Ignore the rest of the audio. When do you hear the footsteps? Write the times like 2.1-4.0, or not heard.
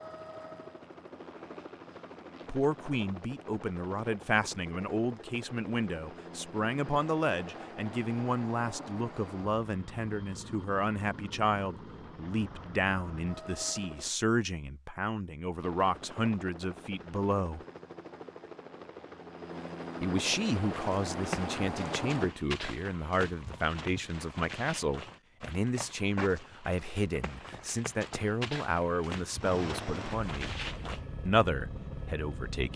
20.6-31.0.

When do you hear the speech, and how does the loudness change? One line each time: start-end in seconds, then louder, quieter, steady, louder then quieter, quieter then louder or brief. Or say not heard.
2.5-17.6 steady
20.0-30.6 steady
31.2-32.7 brief.